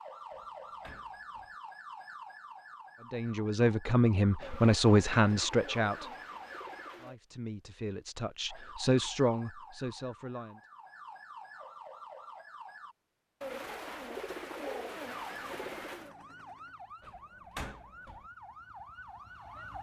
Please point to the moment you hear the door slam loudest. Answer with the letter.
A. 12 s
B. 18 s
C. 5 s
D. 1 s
B.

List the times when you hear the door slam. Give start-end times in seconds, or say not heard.
0.3-1.6, 17.0-18.3.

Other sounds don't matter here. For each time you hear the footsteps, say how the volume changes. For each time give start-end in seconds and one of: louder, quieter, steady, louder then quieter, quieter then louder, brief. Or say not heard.
not heard.